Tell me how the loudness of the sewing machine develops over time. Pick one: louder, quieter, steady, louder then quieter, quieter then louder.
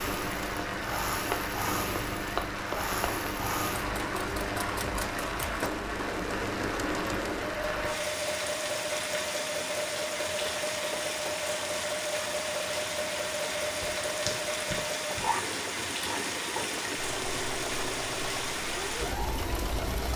steady.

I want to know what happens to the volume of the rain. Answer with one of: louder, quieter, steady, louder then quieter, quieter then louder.
steady.